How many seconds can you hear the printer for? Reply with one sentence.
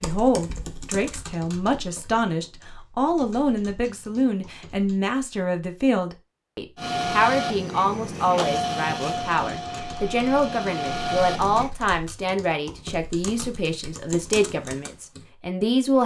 The printer can be heard for 5 seconds in total.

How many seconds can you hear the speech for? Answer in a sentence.
The speech can be heard for 16 seconds in total.